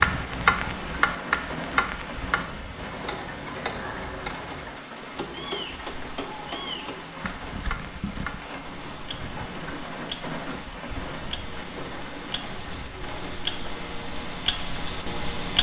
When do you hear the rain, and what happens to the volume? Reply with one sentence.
You can hear the rain from 0.0 to 15.5 s, at a steady volume.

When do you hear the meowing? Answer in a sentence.
The meowing can be heard from 5.2 to 7.3 s.